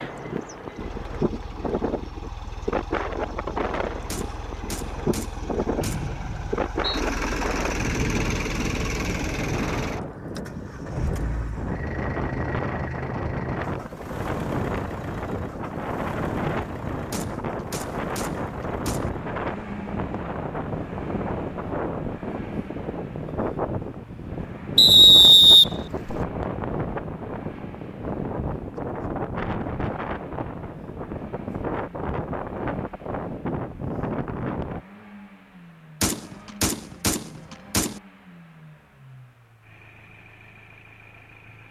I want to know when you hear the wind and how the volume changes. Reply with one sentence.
The wind can be heard from 0.0 to 34.9 s, at a steady volume.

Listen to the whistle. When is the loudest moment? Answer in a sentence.
The loudest moment of the whistle is at 25 seconds.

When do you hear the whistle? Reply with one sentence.
You can hear the whistle from 5.8 to 7.0 s and from 24.8 to 26.1 s.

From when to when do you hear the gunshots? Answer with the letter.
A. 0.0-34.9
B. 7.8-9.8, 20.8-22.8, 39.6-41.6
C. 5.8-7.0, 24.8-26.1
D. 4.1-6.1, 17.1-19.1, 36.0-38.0
D.